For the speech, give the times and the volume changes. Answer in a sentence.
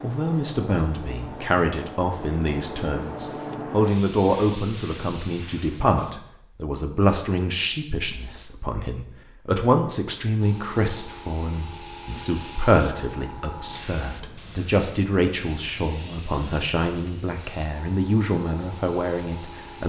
The speech can be heard from 0.0 to 19.8 s, at a steady volume.